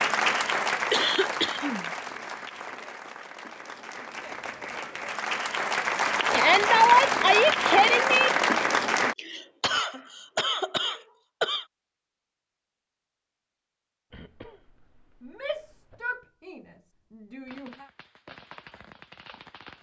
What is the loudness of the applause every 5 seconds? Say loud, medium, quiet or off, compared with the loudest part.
medium, loud, off, off.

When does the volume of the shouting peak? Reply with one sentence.
The loudest moment of the shouting is at 7 seconds.